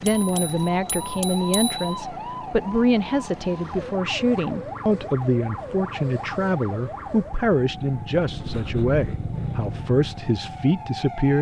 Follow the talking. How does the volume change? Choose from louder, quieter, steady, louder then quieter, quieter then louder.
steady.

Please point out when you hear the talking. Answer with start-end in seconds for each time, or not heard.
0.0-11.3.